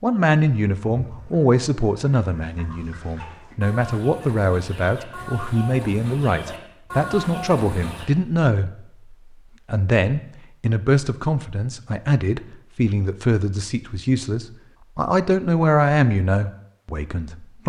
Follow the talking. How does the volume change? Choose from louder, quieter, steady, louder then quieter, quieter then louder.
steady.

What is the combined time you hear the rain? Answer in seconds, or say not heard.
not heard.